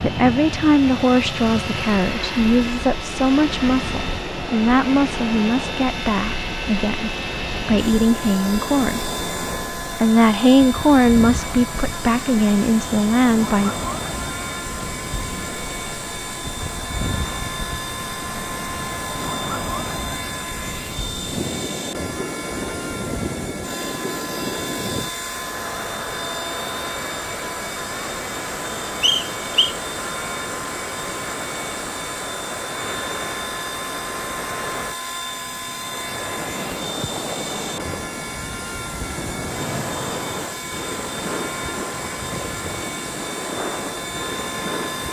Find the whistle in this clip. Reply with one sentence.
You can hear the whistle from 29.0 to 29.8 s.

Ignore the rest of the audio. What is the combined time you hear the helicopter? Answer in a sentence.
The helicopter can be heard for 45 seconds in total.